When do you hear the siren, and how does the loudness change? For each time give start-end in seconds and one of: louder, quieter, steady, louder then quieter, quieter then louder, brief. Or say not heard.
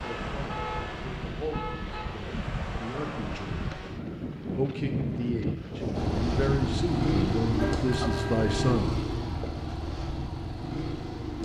not heard.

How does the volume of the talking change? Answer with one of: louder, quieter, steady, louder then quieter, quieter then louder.
louder.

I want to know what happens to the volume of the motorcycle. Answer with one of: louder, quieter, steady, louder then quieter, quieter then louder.
quieter.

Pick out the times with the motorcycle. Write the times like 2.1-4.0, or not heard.
5.9-11.4.